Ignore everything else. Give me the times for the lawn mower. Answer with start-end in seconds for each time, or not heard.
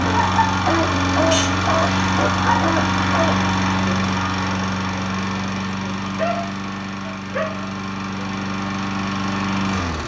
0.0-10.0.